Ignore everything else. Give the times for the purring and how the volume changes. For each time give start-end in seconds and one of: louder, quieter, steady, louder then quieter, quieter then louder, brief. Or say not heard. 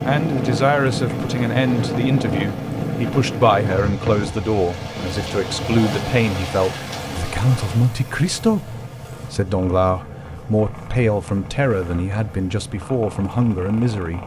0.0-14.2 quieter.